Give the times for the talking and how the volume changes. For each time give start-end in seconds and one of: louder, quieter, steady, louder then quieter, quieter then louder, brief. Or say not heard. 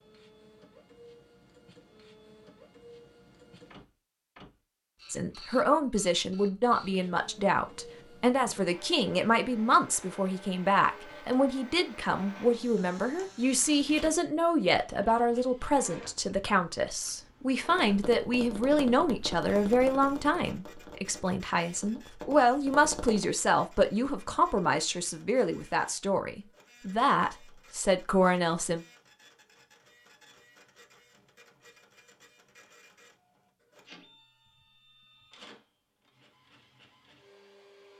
5.1-28.8 steady.